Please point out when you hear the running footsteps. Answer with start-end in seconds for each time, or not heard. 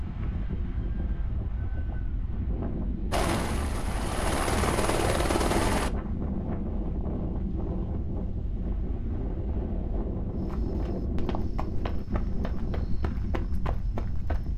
10.3-14.5.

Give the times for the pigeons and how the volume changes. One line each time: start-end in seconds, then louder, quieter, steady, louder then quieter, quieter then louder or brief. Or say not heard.
not heard.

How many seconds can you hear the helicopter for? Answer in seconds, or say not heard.
3 s.